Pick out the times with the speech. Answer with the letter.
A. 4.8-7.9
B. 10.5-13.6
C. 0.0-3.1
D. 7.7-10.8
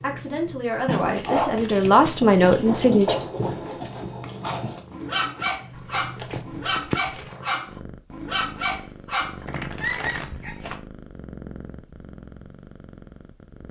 C.